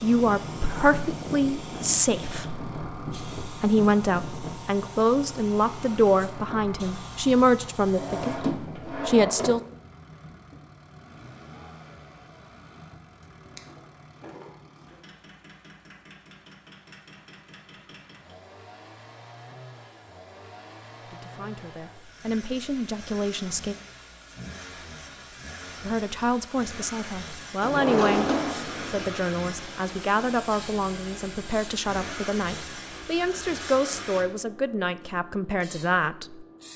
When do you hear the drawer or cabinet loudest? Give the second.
28 s.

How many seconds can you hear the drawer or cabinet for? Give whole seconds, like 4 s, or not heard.
4 s.